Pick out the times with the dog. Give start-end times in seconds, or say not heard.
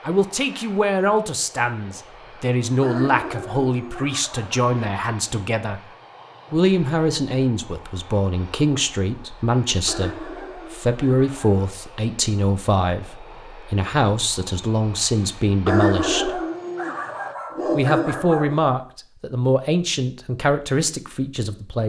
2.8-4.8, 9.8-11.7, 15.7-18.6.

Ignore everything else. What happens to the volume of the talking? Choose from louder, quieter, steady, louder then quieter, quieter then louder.
steady.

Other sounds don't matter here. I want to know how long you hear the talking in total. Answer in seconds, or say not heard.
20 s.